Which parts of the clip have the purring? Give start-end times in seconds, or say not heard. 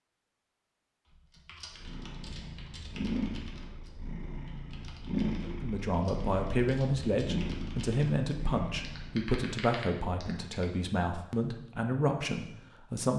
1.7-9.2.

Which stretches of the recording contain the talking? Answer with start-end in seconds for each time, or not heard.
5.4-13.1.